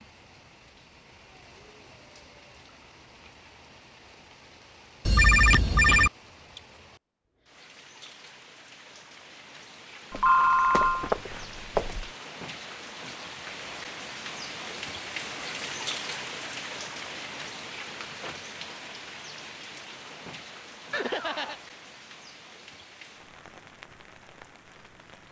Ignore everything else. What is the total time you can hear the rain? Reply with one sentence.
You can hear the rain for 25 seconds altogether.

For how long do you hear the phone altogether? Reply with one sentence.
The phone can be heard for 4 seconds in total.